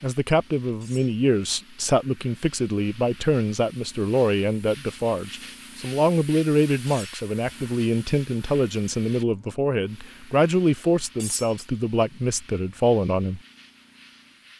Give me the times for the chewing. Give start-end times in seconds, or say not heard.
not heard.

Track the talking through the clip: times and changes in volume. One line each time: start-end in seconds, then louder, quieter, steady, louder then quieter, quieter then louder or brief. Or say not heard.
0.0-13.4 steady.